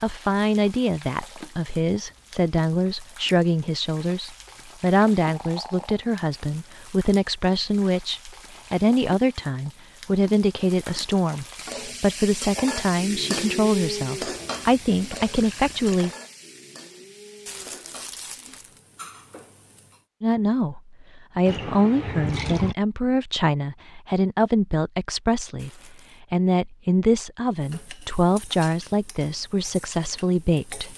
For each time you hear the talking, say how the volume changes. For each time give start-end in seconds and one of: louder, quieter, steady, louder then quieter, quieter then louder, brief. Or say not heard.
0.0-16.1 steady
20.2-30.9 steady.